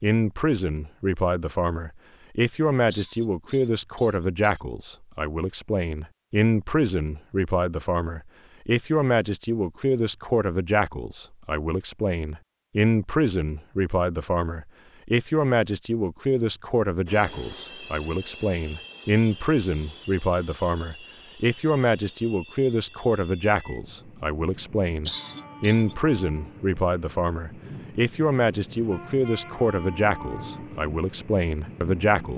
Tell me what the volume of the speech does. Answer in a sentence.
The volume of the speech stays about the same.